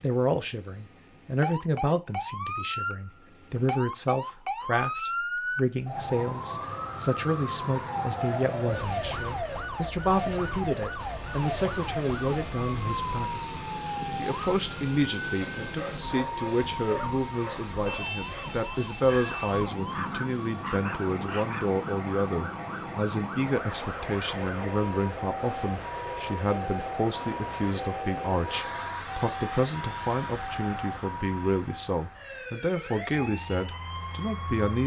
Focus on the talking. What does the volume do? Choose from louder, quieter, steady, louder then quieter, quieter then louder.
steady.